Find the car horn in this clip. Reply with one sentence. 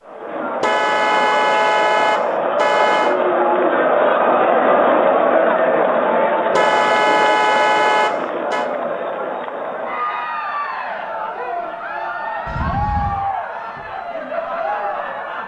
The car horn can be heard from 0.6 to 3.1 s, from 6.5 to 8.7 s and from 12.4 to 13.2 s.